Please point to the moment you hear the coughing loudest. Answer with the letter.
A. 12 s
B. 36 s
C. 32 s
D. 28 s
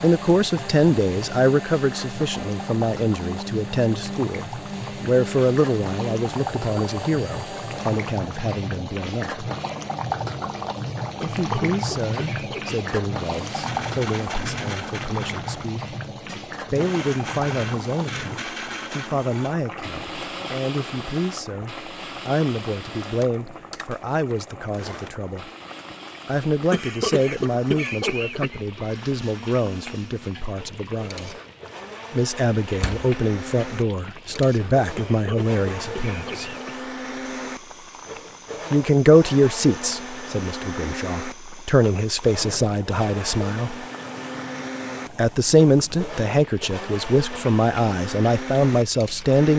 D.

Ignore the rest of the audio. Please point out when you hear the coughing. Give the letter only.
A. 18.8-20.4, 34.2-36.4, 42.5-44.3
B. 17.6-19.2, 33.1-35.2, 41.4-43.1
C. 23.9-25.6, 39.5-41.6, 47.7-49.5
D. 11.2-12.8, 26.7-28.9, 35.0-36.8
D.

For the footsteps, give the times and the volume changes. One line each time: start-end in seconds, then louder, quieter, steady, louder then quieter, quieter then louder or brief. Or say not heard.
not heard.